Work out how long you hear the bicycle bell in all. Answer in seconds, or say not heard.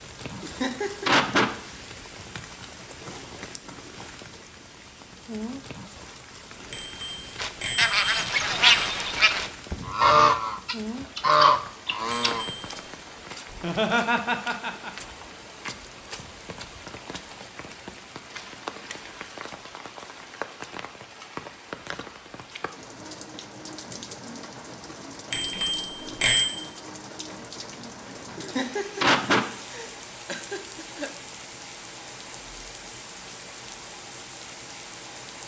4 s.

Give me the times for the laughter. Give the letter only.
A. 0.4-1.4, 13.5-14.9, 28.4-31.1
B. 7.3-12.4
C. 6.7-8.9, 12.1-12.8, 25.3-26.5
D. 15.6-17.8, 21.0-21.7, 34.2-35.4
A.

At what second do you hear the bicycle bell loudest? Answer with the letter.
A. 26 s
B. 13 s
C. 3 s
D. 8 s
A.